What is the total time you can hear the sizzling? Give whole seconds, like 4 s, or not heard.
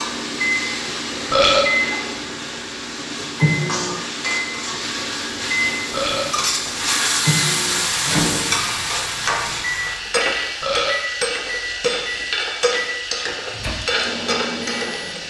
15 s.